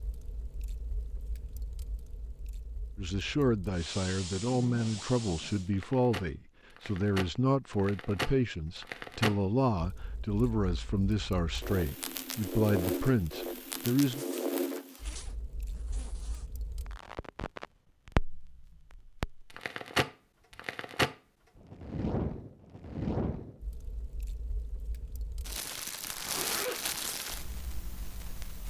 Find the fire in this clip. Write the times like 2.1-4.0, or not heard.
0.0-28.6.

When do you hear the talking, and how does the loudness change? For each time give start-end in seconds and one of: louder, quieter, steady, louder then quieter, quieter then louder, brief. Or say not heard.
3.0-14.2 steady.